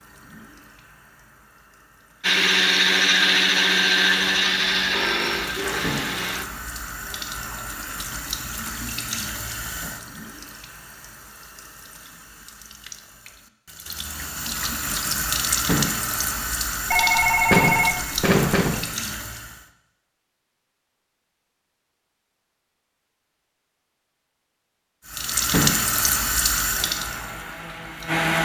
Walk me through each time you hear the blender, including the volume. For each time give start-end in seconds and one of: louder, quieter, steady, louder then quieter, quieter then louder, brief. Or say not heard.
2.2-6.5 quieter
26.8-28.3 brief.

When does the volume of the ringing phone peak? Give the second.
18 s.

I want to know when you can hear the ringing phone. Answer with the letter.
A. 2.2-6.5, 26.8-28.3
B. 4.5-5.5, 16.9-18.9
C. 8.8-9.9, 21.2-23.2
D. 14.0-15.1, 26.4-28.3
B.